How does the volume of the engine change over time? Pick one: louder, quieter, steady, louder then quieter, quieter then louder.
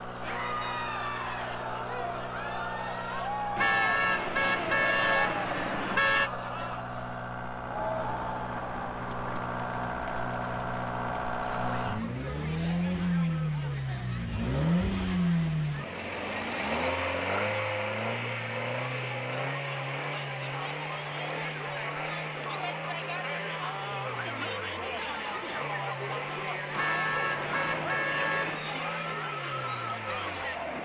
louder then quieter.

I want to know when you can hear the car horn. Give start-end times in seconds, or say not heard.
3.5-6.3, 26.8-28.6.